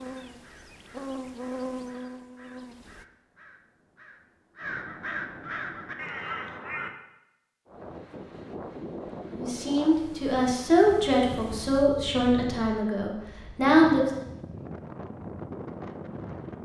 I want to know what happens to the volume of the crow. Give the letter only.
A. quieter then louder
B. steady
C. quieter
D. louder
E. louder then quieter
D.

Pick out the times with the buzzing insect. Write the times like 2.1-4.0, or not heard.
0.0-3.0.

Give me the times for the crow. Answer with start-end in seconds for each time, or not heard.
0.0-6.9.